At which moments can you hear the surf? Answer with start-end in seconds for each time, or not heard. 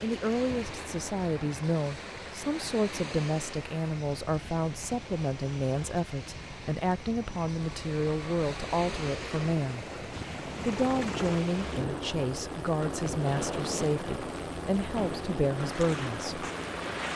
0.0-17.1.